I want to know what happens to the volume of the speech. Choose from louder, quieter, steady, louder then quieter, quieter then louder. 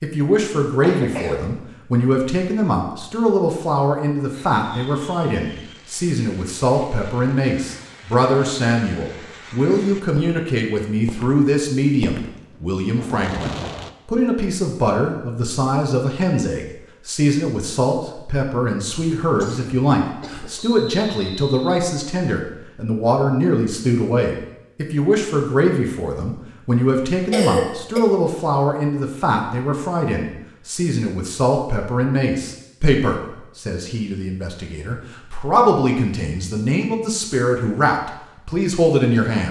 steady.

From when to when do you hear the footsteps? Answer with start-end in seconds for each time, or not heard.
not heard.